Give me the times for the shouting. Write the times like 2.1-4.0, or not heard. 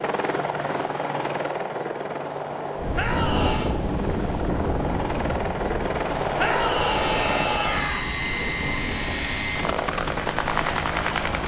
3.0-3.8, 6.3-8.0.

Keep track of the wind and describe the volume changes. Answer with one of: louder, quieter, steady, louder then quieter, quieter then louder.
quieter.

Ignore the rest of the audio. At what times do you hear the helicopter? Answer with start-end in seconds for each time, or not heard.
0.0-11.4.